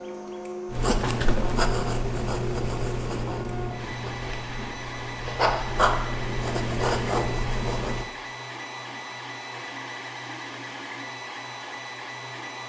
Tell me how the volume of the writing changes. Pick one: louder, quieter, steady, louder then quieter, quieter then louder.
quieter then louder.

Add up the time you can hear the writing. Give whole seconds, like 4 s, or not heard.
7 s.